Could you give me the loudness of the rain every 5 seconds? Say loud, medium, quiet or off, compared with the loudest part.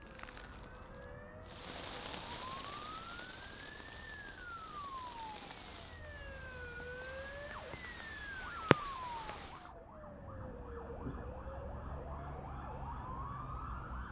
medium, loud, off.